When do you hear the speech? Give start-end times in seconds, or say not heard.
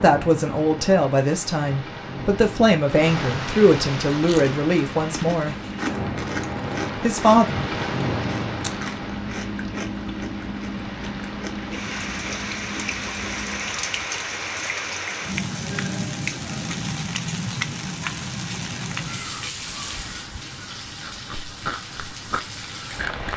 0.0-5.5, 7.0-7.5.